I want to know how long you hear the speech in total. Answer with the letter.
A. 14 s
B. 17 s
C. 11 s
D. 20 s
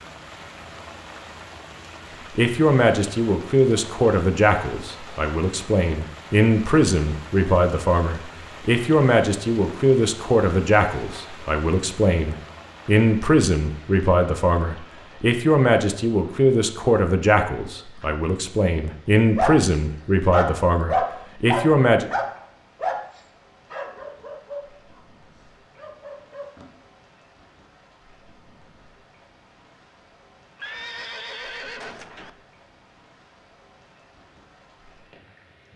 D.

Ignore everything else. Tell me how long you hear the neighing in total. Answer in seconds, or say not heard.
2 s.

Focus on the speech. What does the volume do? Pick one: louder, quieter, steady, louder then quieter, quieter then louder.
steady.